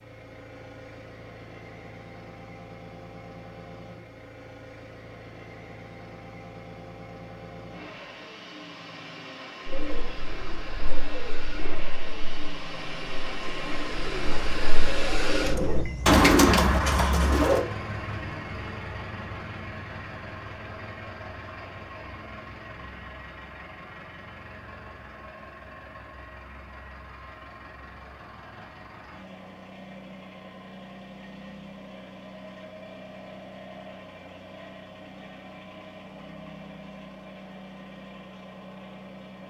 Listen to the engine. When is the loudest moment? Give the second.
15 s.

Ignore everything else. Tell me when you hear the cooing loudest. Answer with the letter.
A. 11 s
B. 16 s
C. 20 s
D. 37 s
B.